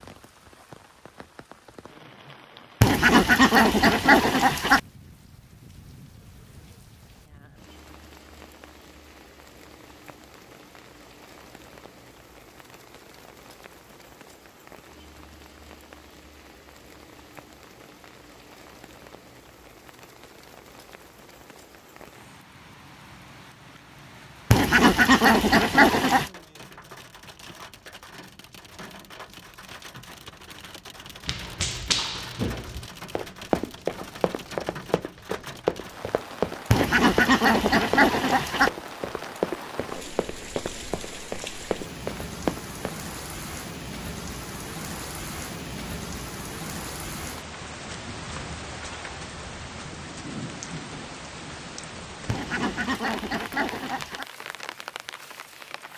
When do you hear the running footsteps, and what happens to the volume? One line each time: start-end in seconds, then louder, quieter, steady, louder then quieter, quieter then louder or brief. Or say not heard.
31.2-43.0 steady.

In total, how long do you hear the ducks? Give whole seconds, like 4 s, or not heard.
8 s.